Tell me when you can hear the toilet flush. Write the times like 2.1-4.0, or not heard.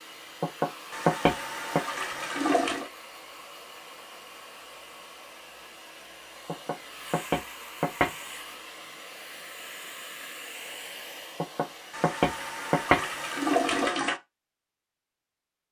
0.9-2.9, 11.9-14.2.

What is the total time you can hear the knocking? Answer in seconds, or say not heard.
5 s.